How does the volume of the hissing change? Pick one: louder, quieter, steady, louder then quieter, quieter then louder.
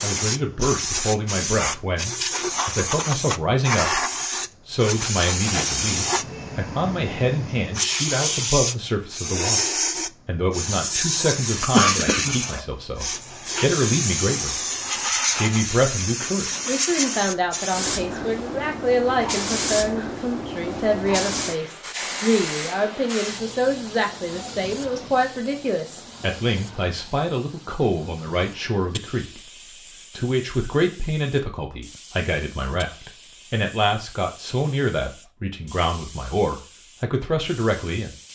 quieter.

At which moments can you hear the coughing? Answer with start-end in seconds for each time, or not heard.
11.2-12.7.